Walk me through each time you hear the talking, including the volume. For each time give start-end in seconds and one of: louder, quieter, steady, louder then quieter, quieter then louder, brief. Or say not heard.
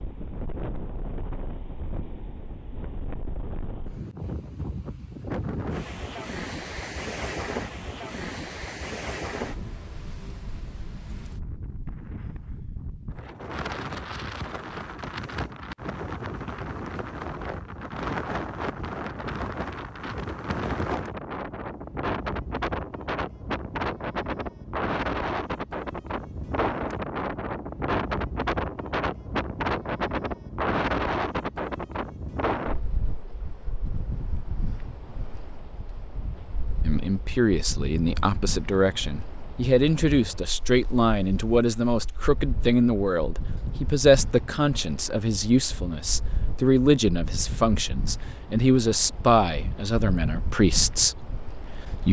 36.9-52.0 steady.